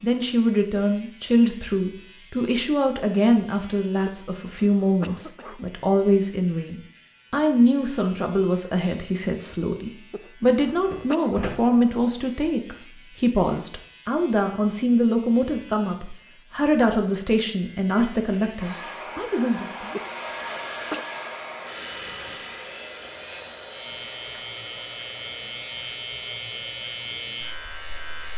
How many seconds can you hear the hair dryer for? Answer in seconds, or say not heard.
10 s.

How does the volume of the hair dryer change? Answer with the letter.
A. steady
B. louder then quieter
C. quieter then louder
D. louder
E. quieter
E.